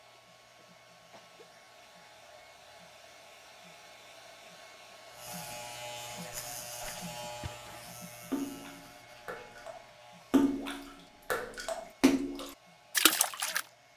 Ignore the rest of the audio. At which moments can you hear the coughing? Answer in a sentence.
You can hear the coughing from 0.1 to 1.5 s.